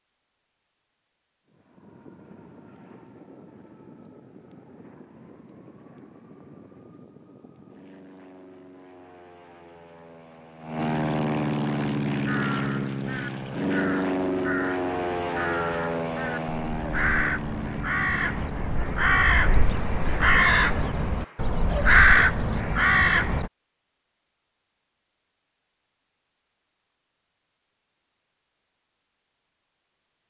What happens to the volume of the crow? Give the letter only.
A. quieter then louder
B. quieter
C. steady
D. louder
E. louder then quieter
D.